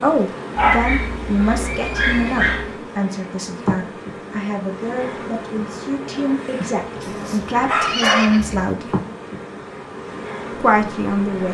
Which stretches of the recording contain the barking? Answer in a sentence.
The barking can be heard from 0.6 to 2.8 s and from 7.0 to 8.4 s.